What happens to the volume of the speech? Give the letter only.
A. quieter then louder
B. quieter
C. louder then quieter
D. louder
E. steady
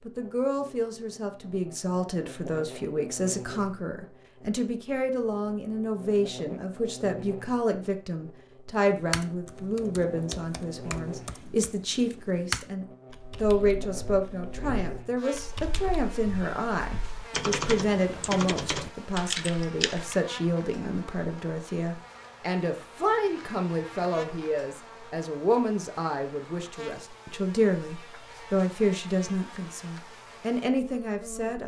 E.